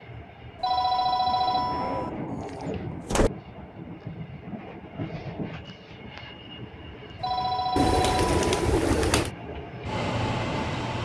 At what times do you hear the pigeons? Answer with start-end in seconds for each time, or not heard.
1.7-3.3, 7.8-9.3.